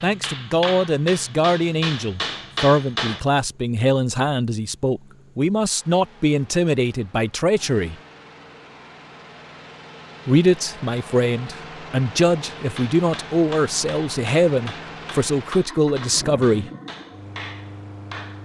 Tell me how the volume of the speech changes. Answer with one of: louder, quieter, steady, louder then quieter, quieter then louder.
steady.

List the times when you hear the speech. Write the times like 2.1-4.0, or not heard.
0.0-8.0, 10.2-16.7.